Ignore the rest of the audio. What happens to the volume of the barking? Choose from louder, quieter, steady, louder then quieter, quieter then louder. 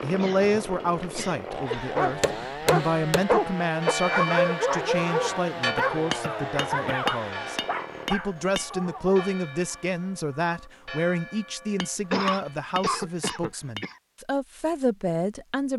quieter.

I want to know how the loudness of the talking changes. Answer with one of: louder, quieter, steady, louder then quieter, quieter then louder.
steady.